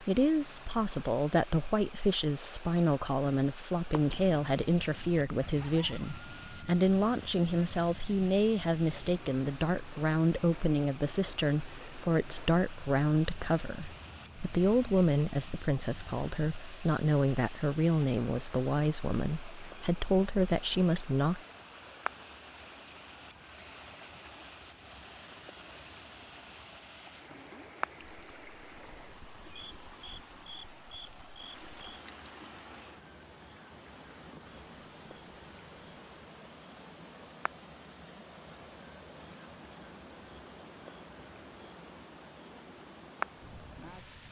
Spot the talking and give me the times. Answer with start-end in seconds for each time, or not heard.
0.0-21.4.